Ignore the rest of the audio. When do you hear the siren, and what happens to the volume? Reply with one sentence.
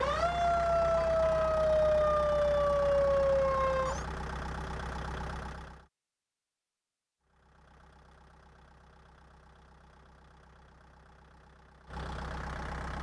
The siren can be heard from 0.0 to 4.0 s, at a steady volume.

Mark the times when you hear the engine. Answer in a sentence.
You can hear the engine from 0.0 to 5.8 s and from 7.2 to 12.9 s.